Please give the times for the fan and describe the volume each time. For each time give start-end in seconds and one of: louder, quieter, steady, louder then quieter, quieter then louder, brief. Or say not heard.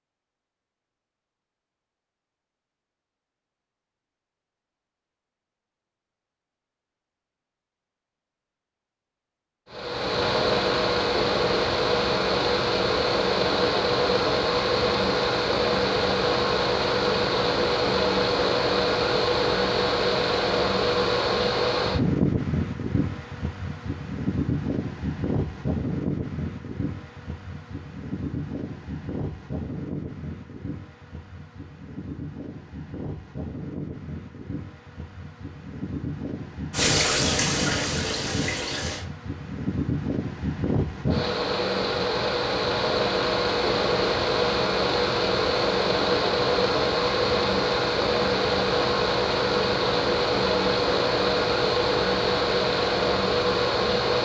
9.7-54.2 quieter then louder.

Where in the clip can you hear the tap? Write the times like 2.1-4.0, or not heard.
36.7-39.0.